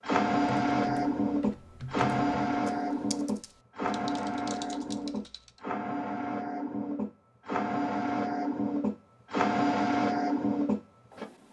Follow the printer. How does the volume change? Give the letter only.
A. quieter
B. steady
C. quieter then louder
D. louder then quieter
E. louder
C.